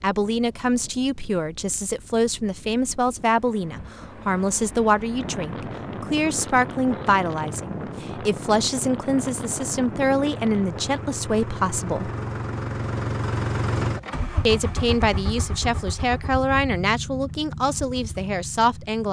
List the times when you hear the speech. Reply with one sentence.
You can hear the speech from 0.0 to 12.1 s and from 14.4 to 19.0 s.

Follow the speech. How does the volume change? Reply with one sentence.
The volume of the speech stays about the same.